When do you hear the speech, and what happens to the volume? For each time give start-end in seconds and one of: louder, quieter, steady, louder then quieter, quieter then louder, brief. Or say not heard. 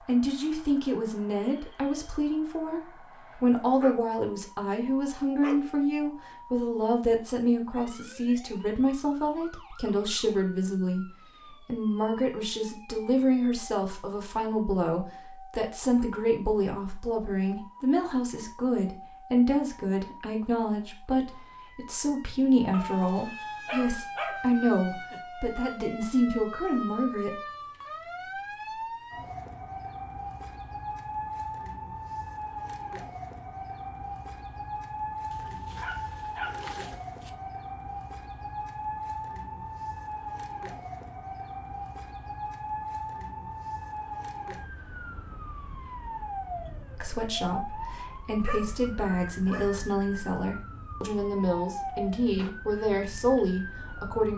0.1-27.4 steady
47.0-54.3 louder.